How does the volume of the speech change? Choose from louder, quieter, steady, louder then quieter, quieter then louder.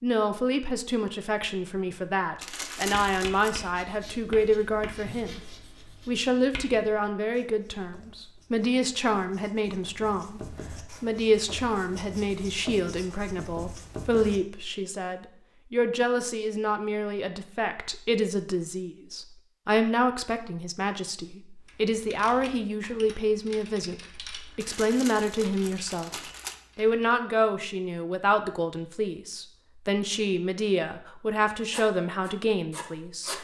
steady.